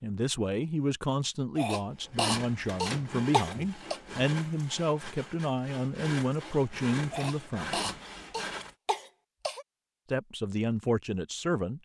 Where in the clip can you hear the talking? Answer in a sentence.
You can hear the talking from 0.0 to 7.8 s and from 10.1 to 11.8 s.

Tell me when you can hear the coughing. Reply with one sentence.
The coughing can be heard from 1.6 to 4.0 s and from 7.1 to 9.7 s.